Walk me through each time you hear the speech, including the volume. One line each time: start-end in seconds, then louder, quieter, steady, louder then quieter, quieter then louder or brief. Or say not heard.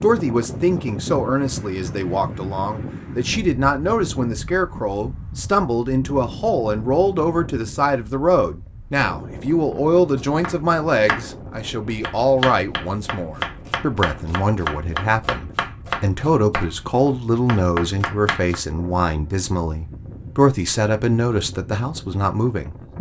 0.0-22.9 steady.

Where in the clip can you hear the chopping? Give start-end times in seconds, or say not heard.
10.2-18.6.